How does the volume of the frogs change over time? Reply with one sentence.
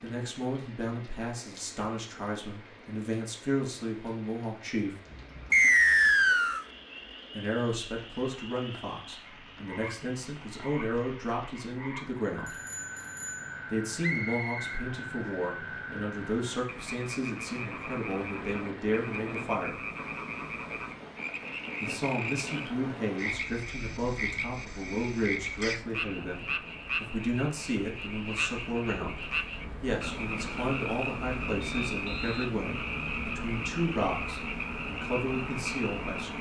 The volume of the frogs goes up.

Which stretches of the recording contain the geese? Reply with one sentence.
You can't hear the geese here.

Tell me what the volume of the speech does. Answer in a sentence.
The volume of the speech stays about the same.